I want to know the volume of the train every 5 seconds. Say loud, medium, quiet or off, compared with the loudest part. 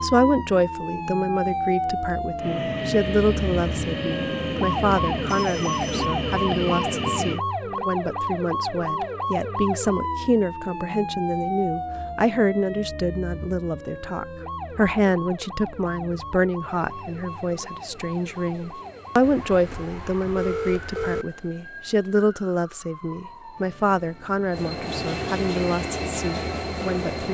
loud, loud, off, quiet, quiet, loud.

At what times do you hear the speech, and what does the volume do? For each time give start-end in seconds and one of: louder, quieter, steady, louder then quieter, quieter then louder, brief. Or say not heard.
0.0-27.2 steady.